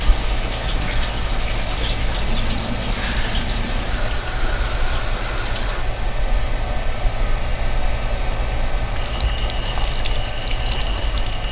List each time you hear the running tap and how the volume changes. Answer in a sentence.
You can hear the running tap from 0.0 to 11.4 s, getting quieter then louder.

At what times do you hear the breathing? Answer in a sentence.
You can't hear the breathing here.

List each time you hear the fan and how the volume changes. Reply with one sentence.
You can hear the fan from 0.0 to 11.4 s, at a steady volume.